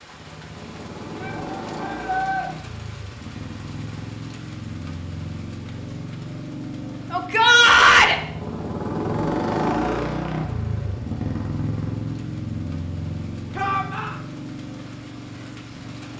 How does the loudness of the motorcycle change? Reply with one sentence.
The volume of the motorcycle goes up, then down.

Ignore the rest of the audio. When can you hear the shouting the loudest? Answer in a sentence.
The loudest moment of the shouting is at 8 seconds.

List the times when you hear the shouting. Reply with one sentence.
You can hear the shouting from 1.2 to 2.5 s, from 7.1 to 8.2 s and from 13.6 to 14.2 s.